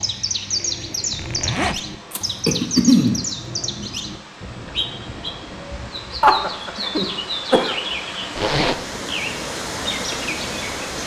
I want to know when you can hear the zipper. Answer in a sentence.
The zipper can be heard from 1.1 to 1.9 s and from 8.3 to 8.8 s.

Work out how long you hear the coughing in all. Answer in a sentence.
The coughing can be heard for 3 seconds in total.